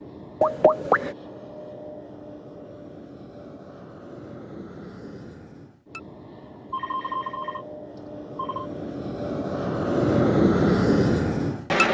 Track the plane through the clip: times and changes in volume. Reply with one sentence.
You can hear the plane from 0.0 to 11.8 s, getting louder.